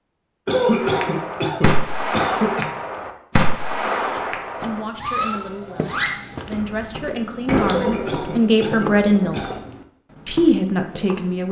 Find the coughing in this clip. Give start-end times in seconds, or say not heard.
0.5-2.7, 7.7-9.6.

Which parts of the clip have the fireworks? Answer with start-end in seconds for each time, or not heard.
0.7-9.7.